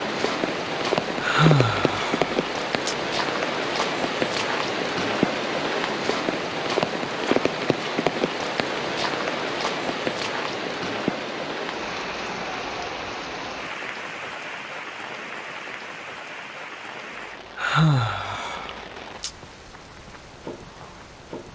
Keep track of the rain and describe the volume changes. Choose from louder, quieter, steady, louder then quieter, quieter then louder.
quieter.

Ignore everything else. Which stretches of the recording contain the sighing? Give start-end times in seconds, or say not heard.
1.2-3.0, 17.6-19.3.